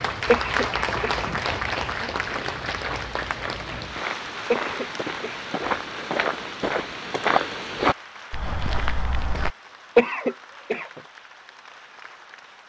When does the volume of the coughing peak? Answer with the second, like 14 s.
10 s.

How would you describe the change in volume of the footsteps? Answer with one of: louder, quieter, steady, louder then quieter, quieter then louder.
louder.